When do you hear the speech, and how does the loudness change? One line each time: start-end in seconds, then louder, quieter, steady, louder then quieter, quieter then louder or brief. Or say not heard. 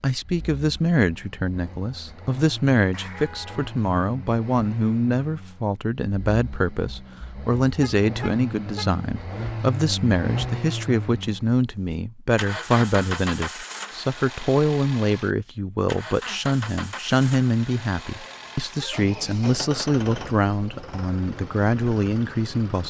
0.0-22.8 steady.